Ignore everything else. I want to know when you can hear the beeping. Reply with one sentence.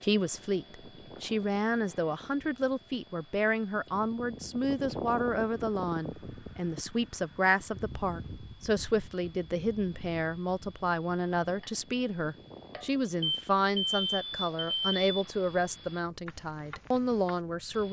The beeping can be heard from 13.2 to 15.2 s.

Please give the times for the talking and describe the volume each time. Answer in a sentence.
You can hear the talking from 0.0 to 17.8 s, at a steady volume.